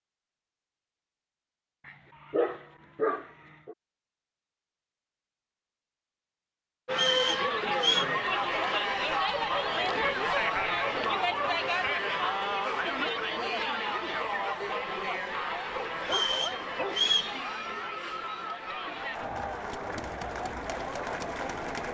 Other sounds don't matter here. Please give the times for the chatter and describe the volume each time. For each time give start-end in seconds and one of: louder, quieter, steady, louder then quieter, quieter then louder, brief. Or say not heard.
6.8-21.9 quieter.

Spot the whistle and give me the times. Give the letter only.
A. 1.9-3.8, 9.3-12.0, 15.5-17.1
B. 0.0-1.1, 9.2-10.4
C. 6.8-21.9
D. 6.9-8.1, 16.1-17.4
D.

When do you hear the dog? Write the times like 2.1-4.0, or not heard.
1.9-3.8, 9.3-12.0, 15.5-17.1.